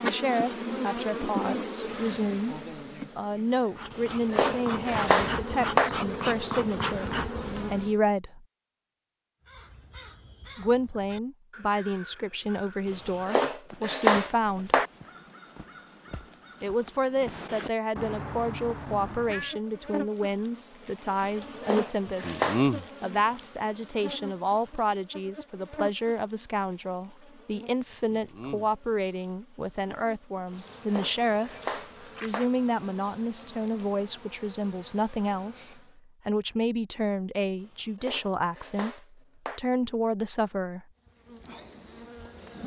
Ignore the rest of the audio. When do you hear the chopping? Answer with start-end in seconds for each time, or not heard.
4.0-5.9, 12.9-14.9, 21.2-22.6, 30.5-32.5, 37.6-39.6.